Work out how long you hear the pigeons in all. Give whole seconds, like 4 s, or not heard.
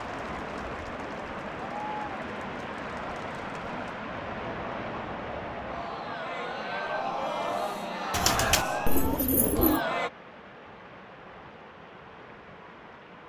2 s.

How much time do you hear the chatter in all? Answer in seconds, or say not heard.
10 s.